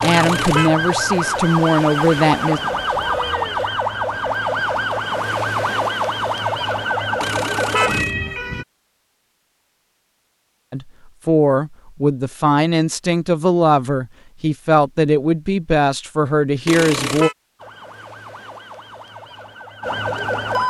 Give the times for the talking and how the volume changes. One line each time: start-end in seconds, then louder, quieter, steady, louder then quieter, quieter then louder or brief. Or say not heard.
0.0-2.6 brief
10.7-17.3 steady.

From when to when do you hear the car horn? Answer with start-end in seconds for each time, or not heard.
0.0-0.7, 7.2-8.2, 16.6-17.4.